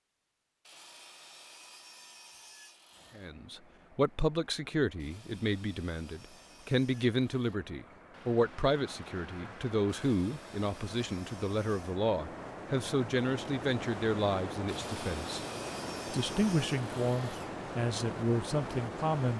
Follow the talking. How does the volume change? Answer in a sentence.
The loudness of the talking stays about the same.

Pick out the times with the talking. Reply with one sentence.
You can hear the talking from 3.1 to 15.4 s and from 16.1 to 19.3 s.